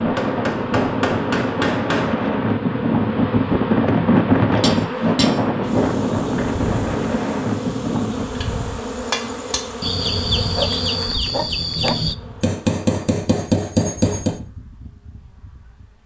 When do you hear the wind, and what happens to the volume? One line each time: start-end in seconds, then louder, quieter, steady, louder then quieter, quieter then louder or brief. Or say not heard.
0.0-8.3 louder then quieter.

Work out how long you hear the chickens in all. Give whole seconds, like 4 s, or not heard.
2 s.